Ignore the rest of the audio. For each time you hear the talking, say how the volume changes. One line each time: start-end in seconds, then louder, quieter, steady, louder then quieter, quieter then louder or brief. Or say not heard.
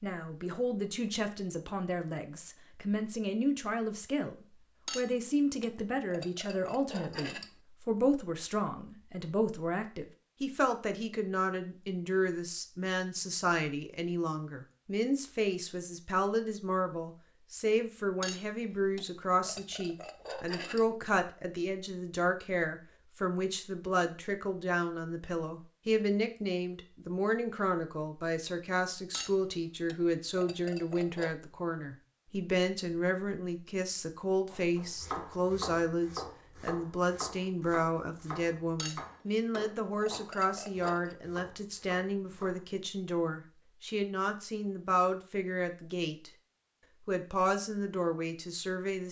0.0-46.3 steady
47.0-49.0 brief.